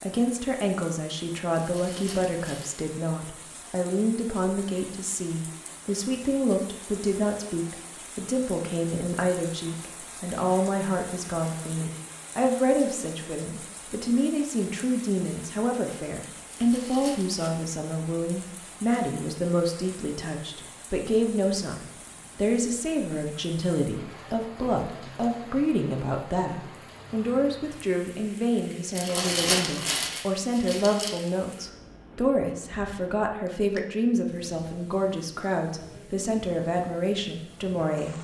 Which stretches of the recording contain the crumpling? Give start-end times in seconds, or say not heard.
1.6-2.9, 16.5-17.5, 28.9-31.2.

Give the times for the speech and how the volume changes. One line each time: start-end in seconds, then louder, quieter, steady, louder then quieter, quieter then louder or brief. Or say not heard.
0.0-38.1 steady.